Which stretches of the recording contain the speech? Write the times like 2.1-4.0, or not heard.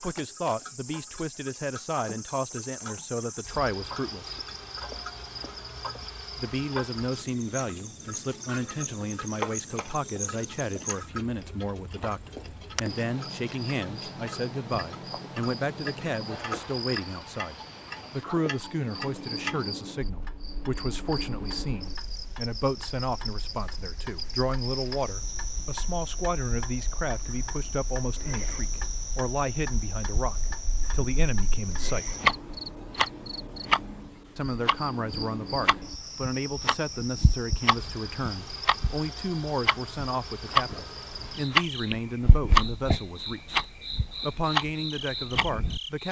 0.0-4.4, 6.3-32.2, 34.4-46.0.